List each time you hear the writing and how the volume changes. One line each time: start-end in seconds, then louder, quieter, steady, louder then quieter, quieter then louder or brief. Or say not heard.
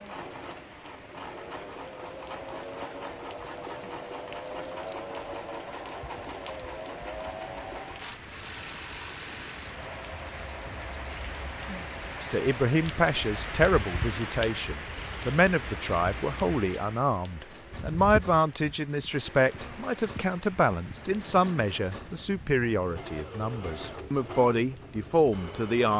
not heard.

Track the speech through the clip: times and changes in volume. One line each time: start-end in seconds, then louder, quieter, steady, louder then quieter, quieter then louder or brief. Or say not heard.
12.2-25.9 steady.